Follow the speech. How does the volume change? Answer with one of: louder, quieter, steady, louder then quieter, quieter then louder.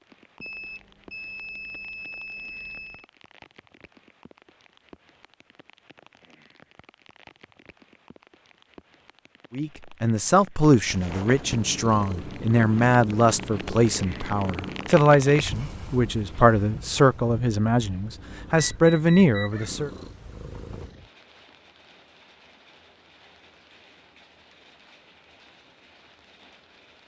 steady.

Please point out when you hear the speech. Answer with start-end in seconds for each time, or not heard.
9.5-19.9.